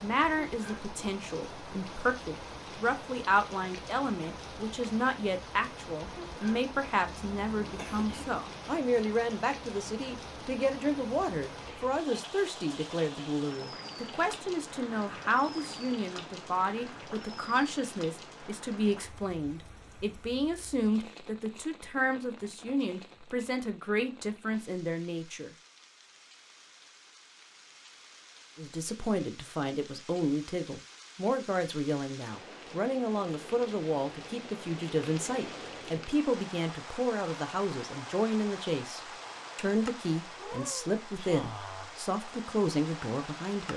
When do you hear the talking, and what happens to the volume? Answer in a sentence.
You can hear the talking from 0.0 to 25.5 s, at a steady volume; and from 28.6 to 43.7 s, at a steady volume.